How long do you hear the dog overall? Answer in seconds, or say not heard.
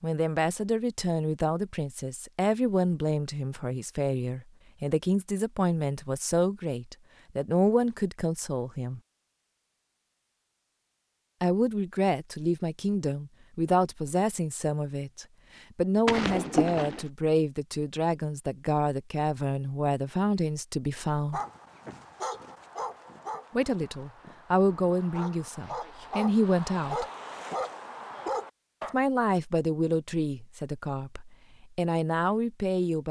8 s.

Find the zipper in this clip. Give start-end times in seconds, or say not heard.
16.1-17.1.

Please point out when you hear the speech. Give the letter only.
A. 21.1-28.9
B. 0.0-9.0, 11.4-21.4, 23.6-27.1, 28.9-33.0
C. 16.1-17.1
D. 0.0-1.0
B.